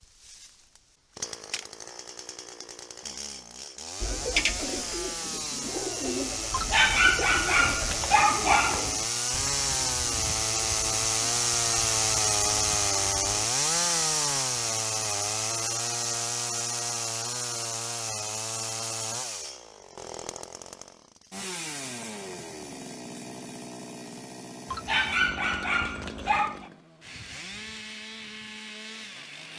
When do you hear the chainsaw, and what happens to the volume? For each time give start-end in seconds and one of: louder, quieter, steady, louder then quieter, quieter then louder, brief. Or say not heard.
0.0-29.5 louder then quieter.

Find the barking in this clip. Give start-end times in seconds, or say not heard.
6.5-9.1, 24.7-26.7.